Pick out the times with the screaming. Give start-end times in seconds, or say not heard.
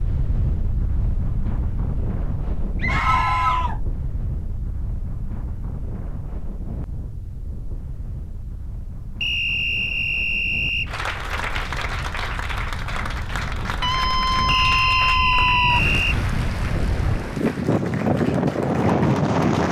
2.9-3.8, 13.8-15.8.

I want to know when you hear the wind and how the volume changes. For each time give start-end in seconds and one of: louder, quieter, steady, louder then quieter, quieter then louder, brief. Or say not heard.
0.0-19.6 quieter then louder.